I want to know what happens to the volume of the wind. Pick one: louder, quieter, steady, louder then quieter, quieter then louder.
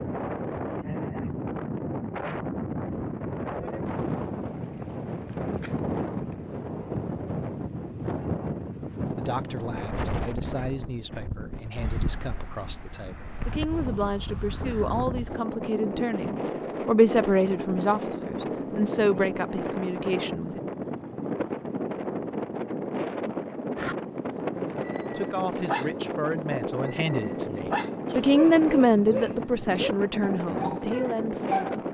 steady.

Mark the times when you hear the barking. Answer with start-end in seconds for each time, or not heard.
23.8-31.8.